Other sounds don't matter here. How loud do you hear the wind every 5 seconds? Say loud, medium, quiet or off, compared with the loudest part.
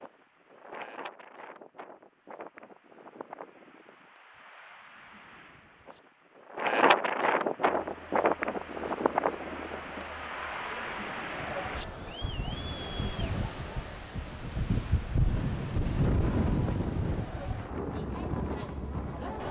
quiet, loud, medium, loud.